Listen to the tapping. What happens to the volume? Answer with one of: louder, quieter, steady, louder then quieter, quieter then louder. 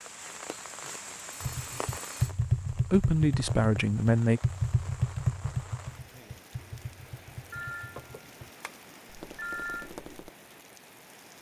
quieter.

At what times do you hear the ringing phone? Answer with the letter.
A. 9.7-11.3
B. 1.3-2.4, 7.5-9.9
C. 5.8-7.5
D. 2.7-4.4
B.